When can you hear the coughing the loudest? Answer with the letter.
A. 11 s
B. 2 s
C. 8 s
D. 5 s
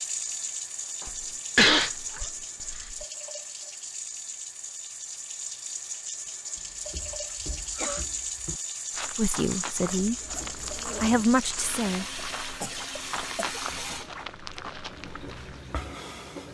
B.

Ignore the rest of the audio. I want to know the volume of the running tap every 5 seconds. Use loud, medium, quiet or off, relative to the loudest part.
loud, loud, loud, medium.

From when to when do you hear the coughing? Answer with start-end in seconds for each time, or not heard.
1.1-3.0, 7.3-8.1, 11.4-13.6.